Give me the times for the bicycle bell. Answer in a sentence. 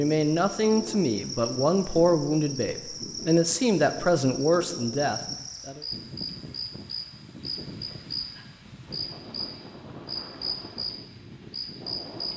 The bicycle bell can't be heard in this clip.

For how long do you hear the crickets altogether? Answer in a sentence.
You can hear the crickets for 12 seconds altogether.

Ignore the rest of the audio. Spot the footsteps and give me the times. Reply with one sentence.
The footsteps can't be heard in this clip.